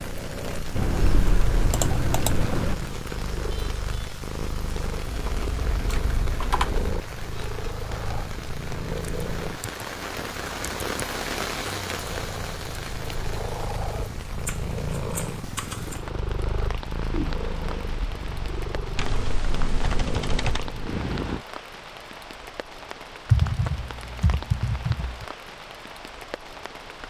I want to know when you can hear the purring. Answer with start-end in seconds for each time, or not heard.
0.0-9.7, 11.9-21.4.